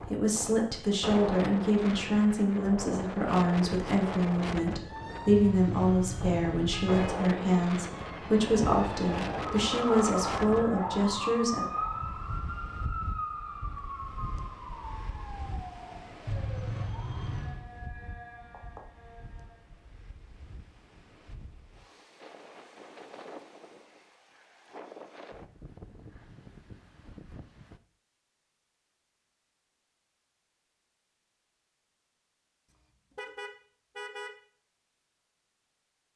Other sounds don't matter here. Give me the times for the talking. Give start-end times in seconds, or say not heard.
0.1-11.7.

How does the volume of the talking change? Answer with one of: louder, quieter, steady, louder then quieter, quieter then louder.
steady.